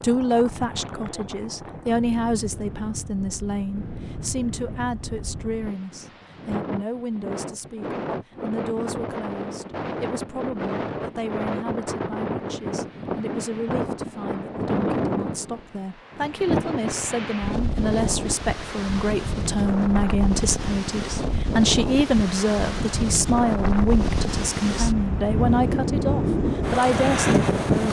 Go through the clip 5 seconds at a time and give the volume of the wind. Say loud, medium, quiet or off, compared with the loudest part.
quiet, medium, medium, medium, medium, loud.